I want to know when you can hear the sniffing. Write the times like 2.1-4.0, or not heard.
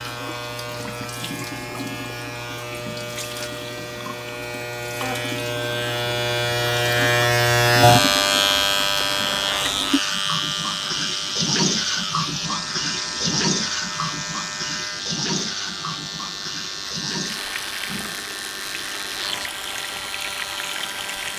not heard.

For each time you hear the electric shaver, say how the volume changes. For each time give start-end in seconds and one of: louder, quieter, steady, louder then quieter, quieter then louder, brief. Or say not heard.
0.0-21.3 louder then quieter.